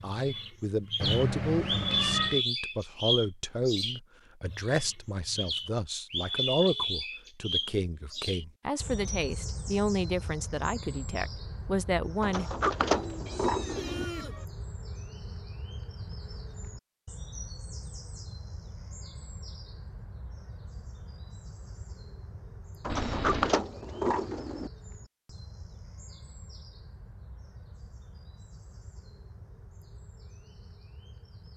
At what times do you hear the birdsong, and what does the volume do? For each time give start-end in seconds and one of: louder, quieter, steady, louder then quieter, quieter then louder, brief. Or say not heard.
0.0-31.5 quieter.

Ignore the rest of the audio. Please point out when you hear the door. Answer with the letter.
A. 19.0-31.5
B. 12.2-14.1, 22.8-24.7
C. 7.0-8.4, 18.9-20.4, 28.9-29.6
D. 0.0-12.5
B.